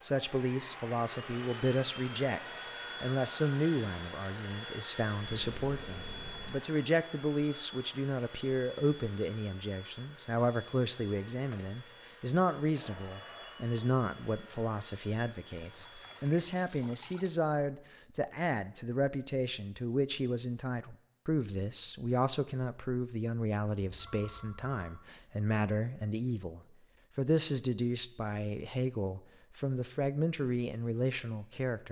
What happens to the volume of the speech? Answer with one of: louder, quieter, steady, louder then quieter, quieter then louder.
steady.